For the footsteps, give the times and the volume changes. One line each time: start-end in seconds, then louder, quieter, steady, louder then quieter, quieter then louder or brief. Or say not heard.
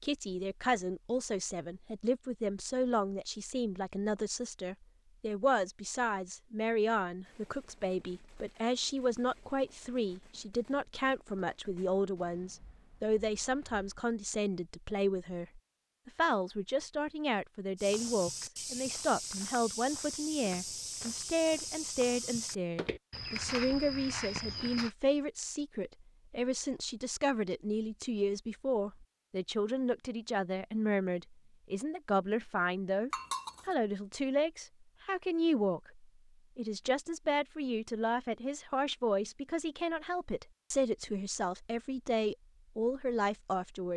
17.8-24.9 steady.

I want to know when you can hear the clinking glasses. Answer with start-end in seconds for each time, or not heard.
33.1-33.7.